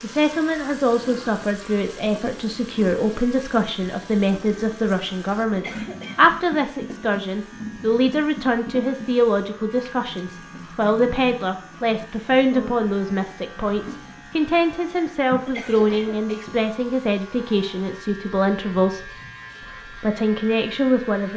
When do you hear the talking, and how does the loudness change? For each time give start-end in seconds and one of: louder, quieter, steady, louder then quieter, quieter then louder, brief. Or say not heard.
0.0-19.1 steady
19.9-21.3 brief.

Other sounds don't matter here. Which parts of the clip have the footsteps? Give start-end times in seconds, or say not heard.
not heard.